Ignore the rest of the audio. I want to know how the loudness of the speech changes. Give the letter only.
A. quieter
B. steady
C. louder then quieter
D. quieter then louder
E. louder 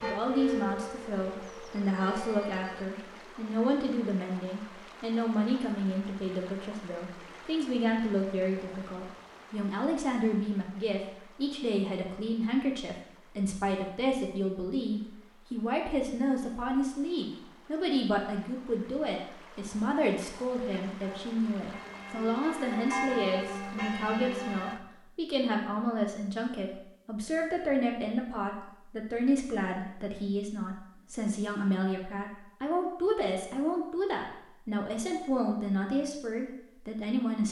B.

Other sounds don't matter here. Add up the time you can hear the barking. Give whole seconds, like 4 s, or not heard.
not heard.